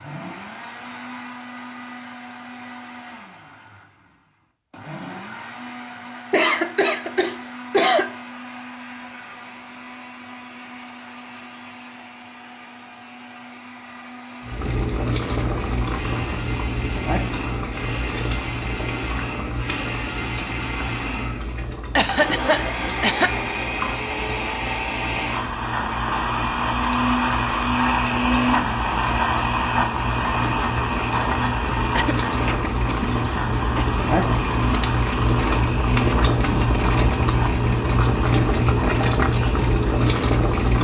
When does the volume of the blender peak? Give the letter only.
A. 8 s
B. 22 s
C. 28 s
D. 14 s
C.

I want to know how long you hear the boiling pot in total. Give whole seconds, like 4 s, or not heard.
26 s.